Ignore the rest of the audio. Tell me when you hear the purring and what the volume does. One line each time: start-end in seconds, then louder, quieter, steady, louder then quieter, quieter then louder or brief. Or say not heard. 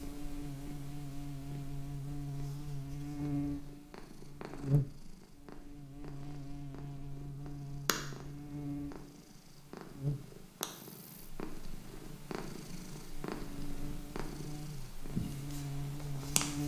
0.0-16.6 louder.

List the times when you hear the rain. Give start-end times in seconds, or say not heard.
not heard.